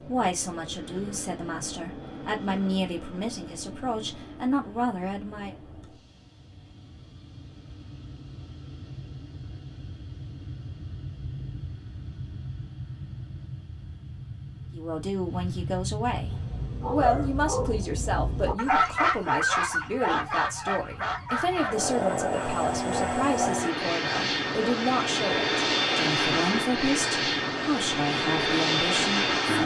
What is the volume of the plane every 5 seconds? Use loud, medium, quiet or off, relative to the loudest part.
quiet, quiet, quiet, quiet, medium, loud.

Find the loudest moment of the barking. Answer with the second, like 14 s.
19 s.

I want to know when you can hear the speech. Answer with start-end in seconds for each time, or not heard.
0.0-5.5, 14.7-29.6.